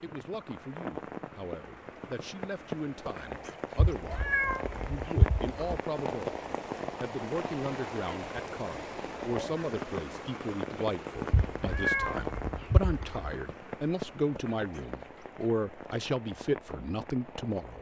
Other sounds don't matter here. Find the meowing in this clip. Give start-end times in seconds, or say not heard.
3.8-5.8, 11.3-13.3.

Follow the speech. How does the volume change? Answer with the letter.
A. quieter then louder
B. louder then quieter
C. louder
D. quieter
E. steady
C.